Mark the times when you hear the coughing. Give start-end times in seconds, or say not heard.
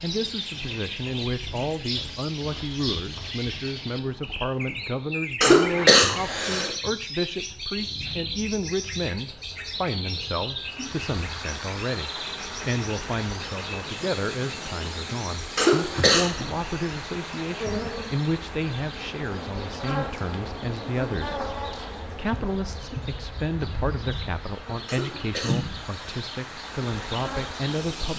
5.4-6.7, 15.6-16.3, 24.9-26.1.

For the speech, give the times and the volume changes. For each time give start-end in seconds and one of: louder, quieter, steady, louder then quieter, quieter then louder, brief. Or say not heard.
0.0-28.1 steady.